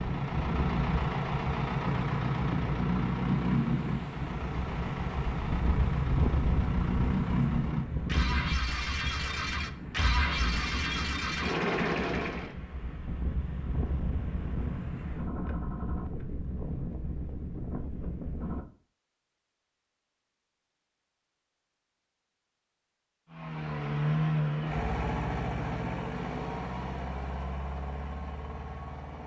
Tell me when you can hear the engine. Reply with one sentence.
The engine can be heard from 0.0 to 12.6 s and from 23.3 to 29.2 s.